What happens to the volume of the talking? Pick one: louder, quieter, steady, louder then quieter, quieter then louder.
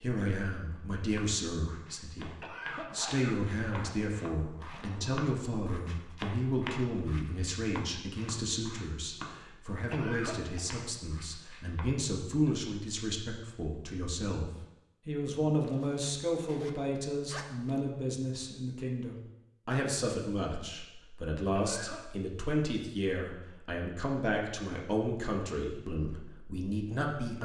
steady.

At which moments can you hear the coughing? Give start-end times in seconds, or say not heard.
2.4-3.4, 9.9-10.7, 21.6-22.0.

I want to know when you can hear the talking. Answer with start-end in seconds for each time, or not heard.
0.0-27.3.